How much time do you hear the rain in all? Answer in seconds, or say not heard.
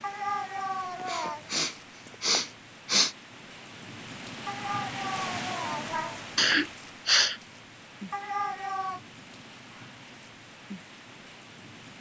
12 s.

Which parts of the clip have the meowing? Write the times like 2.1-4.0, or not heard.
0.0-1.5, 4.5-6.2, 8.1-9.0.